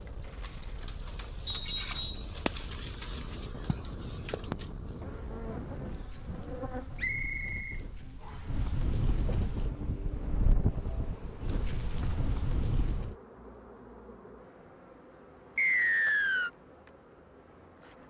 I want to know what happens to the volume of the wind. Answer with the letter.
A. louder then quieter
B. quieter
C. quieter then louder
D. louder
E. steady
D.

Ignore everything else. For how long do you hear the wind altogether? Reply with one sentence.
The wind can be heard for 13 seconds in total.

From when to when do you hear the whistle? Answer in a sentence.
You can hear the whistle from 1.4 to 2.3 s, from 7.0 to 8.4 s and from 15.6 to 16.5 s.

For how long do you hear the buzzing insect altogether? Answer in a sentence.
You can hear the buzzing insect for 18 seconds altogether.